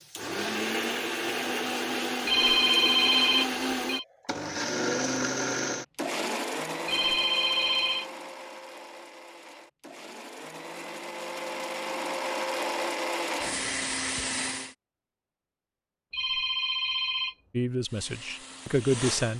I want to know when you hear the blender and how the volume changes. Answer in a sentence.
You can hear the blender from 0.0 to 14.8 s, getting quieter then louder; and briefly from 17.8 to 19.3 s.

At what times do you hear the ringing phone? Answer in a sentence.
You can hear the ringing phone from 2.2 to 4.0 s, from 6.8 to 8.1 s and from 16.1 to 17.4 s.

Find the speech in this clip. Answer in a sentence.
You can hear the speech from 17.5 to 19.3 s.